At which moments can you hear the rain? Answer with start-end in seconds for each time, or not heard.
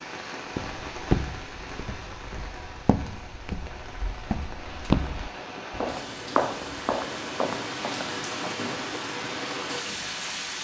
0.0-10.5.